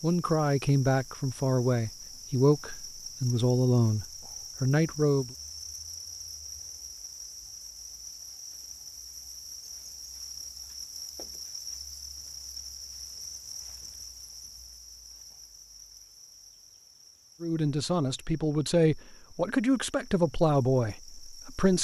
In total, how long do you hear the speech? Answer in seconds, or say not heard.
10 s.